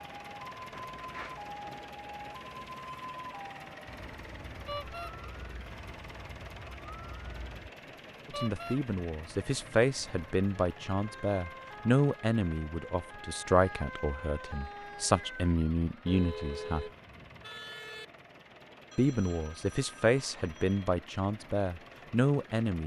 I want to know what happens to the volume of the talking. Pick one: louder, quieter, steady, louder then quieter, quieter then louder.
steady.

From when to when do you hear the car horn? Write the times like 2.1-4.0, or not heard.
4.7-5.2, 8.3-8.8, 16.1-18.1.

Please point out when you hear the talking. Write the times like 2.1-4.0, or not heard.
8.2-16.9, 18.9-22.8.